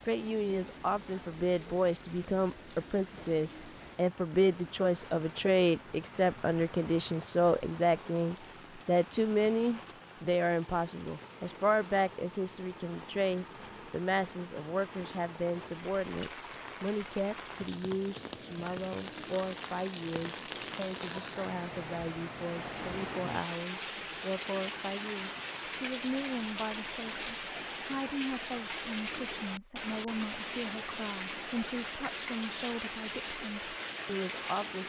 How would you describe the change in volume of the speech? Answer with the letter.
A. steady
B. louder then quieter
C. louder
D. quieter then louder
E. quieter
E.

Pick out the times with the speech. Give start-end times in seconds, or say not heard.
0.1-34.8.